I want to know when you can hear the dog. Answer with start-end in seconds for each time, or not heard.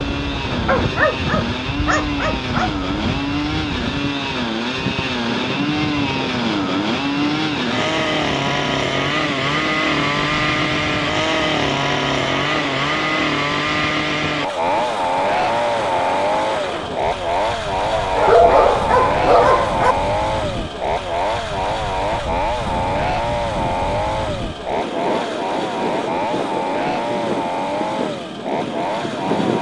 0.7-2.7, 18.0-19.9.